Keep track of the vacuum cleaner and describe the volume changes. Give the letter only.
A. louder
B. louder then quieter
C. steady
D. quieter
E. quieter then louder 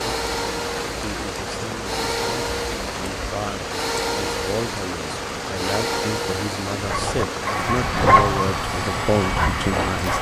C.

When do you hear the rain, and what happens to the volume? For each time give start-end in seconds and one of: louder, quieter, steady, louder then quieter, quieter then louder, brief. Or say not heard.
0.0-10.1 steady.